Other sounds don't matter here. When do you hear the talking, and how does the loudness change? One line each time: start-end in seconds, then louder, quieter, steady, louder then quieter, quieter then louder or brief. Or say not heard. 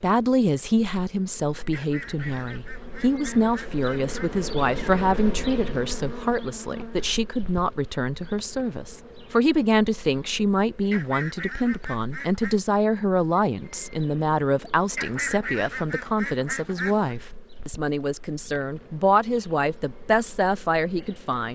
0.0-21.5 steady.